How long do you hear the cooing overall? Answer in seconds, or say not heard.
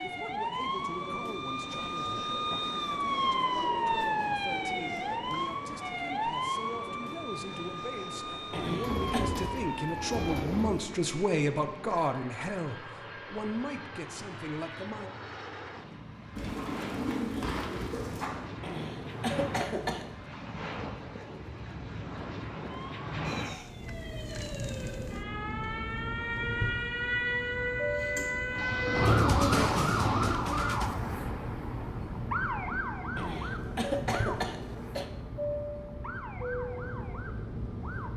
6 s.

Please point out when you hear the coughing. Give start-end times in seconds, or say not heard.
8.5-9.2, 18.6-20.1, 33.1-35.1.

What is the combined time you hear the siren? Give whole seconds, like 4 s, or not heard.
26 s.